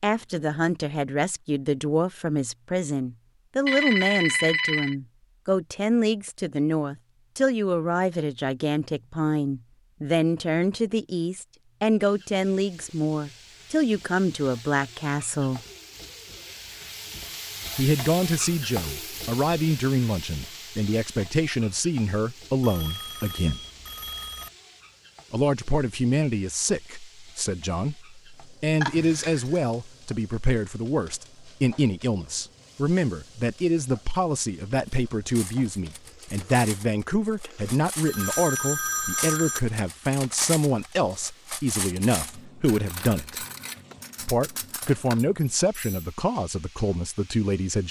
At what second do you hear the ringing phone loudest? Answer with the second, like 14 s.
4 s.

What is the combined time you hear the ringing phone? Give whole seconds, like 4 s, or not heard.
5 s.